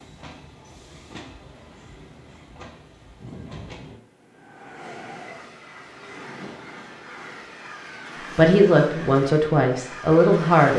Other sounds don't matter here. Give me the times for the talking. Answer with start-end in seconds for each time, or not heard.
8.3-10.7.